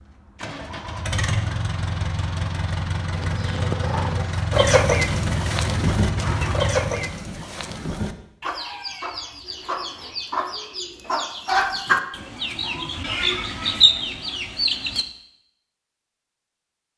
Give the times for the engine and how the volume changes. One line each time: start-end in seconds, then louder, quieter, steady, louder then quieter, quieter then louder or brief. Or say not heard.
0.0-7.2 steady.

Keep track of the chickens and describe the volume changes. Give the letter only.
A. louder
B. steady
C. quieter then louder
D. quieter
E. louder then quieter
C.